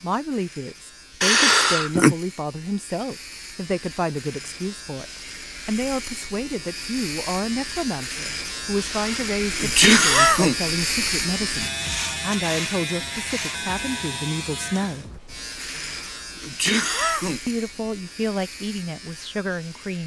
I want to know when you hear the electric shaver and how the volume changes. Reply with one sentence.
The electric shaver can be heard from 0.0 to 20.0 s, getting louder then quieter.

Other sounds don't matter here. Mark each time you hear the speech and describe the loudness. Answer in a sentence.
The speech can be heard from 0.0 to 15.1 s, at a steady volume; and briefly from 17.4 to 20.0 s.